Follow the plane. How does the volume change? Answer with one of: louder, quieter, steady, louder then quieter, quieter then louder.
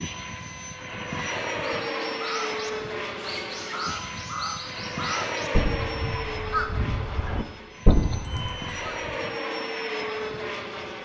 quieter then louder.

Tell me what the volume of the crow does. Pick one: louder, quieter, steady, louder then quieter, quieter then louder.
louder.